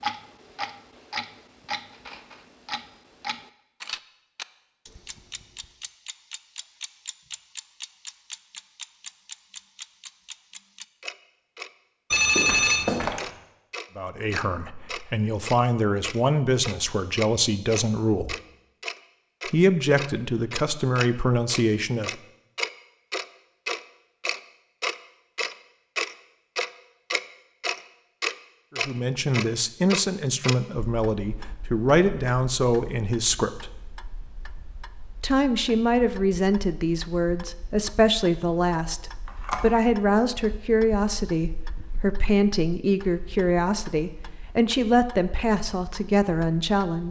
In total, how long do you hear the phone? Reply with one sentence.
You can hear the phone for 2 seconds altogether.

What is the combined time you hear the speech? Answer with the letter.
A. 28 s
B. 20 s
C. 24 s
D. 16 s
C.